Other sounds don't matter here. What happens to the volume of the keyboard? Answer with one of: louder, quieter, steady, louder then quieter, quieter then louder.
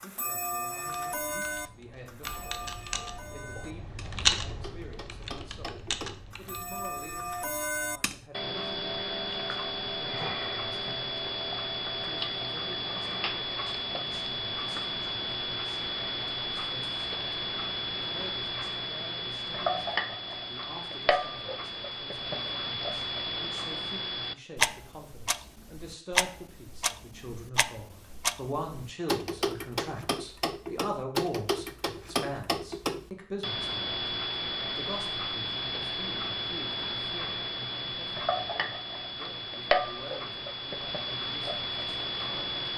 louder then quieter.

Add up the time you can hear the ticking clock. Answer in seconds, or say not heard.
43 s.